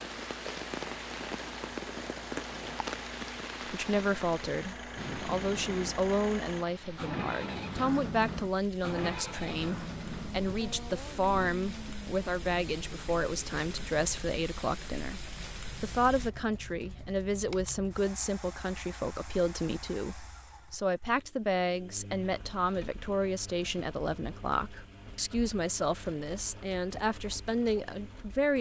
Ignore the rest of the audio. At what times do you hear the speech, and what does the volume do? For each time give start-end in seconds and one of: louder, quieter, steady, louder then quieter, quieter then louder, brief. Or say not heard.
3.7-28.5 steady.